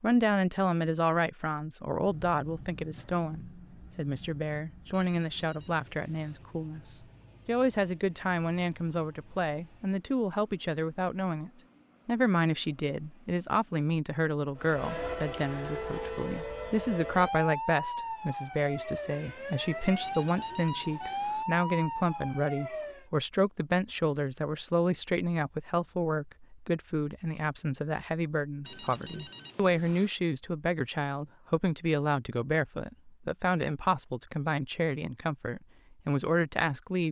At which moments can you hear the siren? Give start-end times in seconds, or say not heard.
14.6-23.1.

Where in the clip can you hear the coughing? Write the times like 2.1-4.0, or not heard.
not heard.